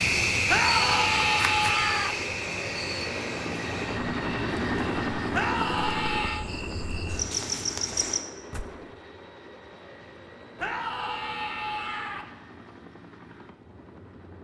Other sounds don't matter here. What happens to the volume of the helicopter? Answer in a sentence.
The loudness of the helicopter goes down.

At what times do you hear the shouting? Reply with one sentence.
You can hear the shouting from 0.5 to 2.1 s, from 5.3 to 6.5 s and from 10.6 to 12.2 s.